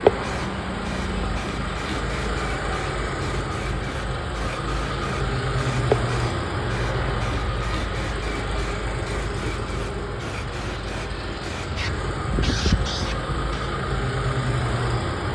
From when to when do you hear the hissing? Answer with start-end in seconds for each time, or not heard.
0.0-13.7.